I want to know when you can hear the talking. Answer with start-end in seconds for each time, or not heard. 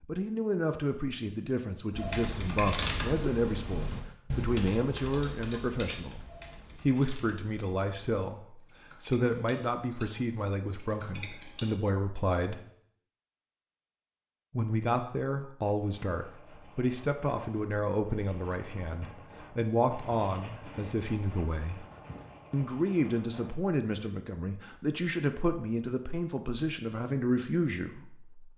0.0-12.6, 14.5-21.9, 22.5-28.5.